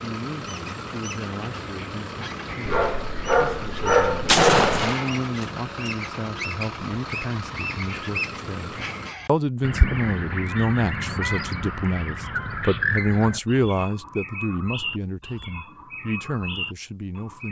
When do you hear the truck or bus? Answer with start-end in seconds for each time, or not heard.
0.0-9.2.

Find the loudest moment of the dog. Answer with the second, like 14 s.
4 s.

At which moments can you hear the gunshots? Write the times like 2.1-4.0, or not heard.
4.2-5.9.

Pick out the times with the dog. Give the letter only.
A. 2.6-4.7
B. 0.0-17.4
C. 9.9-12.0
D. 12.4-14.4
A.